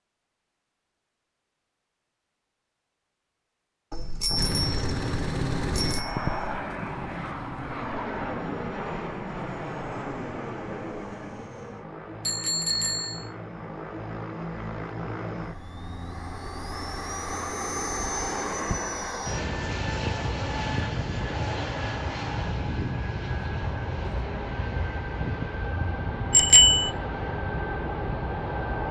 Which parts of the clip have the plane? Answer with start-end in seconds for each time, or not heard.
4.3-28.8.